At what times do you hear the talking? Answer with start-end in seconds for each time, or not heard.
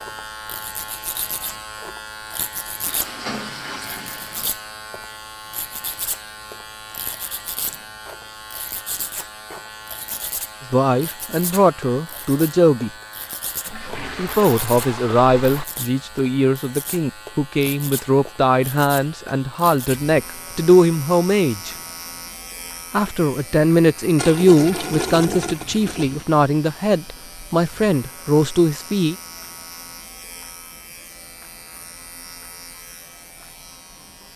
10.7-12.9, 14.2-21.8, 22.9-29.1.